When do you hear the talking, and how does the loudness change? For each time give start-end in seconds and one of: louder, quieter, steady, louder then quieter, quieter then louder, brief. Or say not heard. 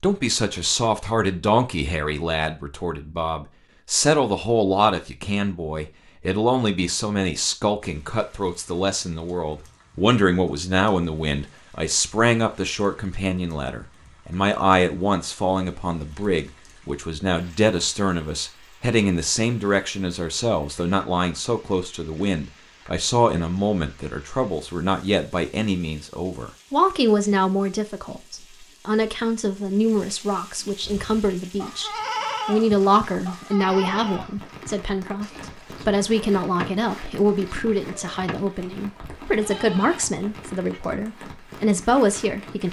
0.0-42.6 steady.